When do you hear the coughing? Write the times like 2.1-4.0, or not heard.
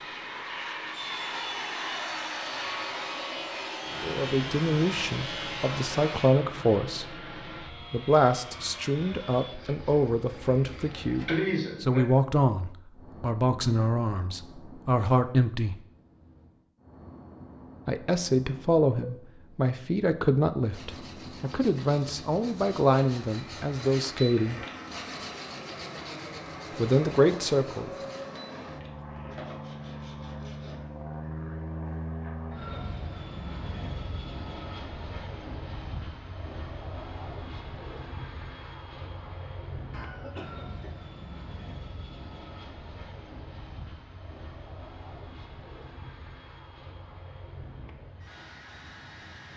11.2-12.1, 39.9-40.9.